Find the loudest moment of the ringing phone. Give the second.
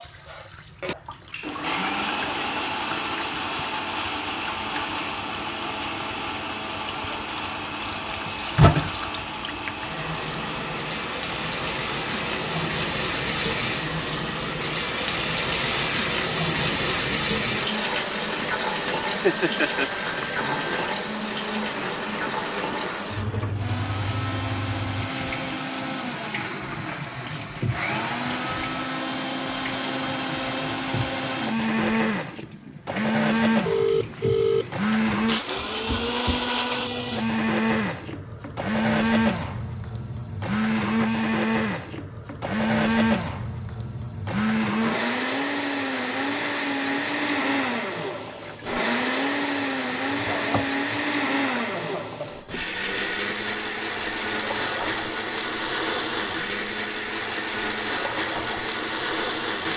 34 s.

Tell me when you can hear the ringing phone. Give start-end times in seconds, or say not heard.
19.2-20.9, 33.6-34.8.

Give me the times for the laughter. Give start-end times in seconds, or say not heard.
19.1-19.9, 51.8-52.3.